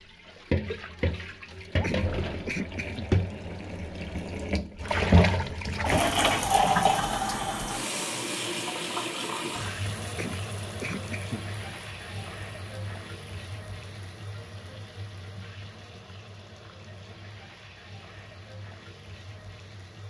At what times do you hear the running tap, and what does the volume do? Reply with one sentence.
You can hear the running tap from 0.0 to 20.0 s, getting louder then quieter.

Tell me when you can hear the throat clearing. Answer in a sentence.
The throat clearing can be heard from 1.8 to 3.0 s and from 10.2 to 11.4 s.